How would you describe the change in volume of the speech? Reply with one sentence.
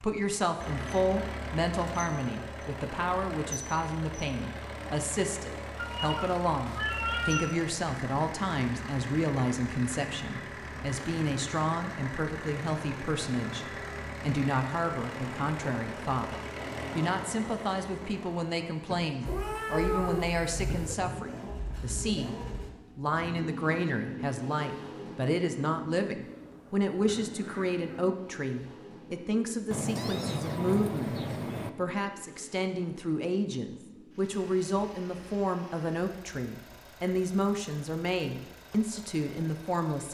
The volume of the speech stays about the same.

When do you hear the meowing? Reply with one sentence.
The meowing can be heard from 5.8 to 7.5 s, from 19.2 to 20.9 s and from 29.7 to 31.7 s.